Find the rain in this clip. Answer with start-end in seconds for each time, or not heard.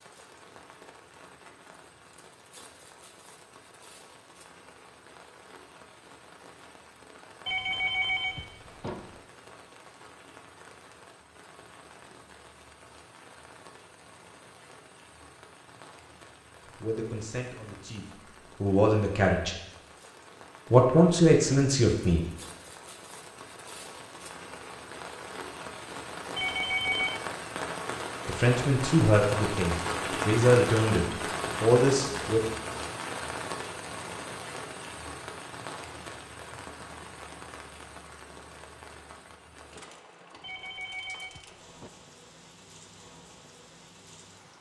0.0-44.5.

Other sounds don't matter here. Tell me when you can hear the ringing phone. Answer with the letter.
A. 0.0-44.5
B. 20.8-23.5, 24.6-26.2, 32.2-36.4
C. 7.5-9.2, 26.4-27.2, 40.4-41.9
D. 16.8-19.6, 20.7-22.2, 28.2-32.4
C.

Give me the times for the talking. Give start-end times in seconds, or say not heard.
16.8-19.6, 20.7-22.2, 28.2-32.4.